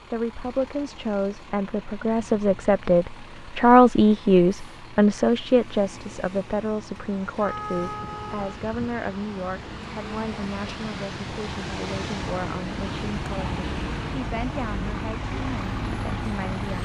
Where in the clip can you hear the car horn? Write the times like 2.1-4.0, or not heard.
7.4-8.7.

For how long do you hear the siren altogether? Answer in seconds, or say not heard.
not heard.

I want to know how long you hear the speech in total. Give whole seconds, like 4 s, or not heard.
17 s.